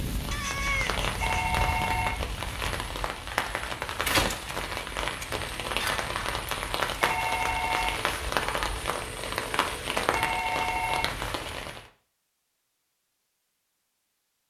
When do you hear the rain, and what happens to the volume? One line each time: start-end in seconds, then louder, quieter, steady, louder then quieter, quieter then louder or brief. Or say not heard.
0.0-11.8 steady.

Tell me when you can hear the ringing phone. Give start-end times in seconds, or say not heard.
1.2-2.2, 7.0-8.0, 10.1-11.1.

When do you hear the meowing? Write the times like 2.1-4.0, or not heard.
0.3-1.5.